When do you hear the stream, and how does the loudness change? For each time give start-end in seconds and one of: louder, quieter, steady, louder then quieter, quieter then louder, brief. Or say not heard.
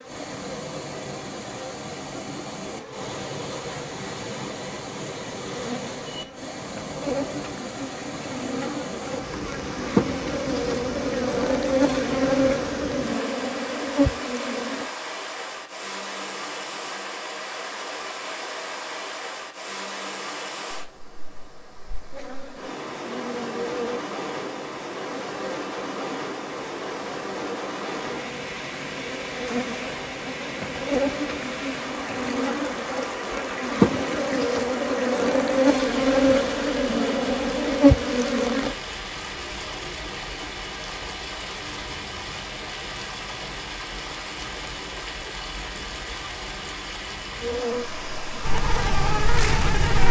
0.0-50.0 steady.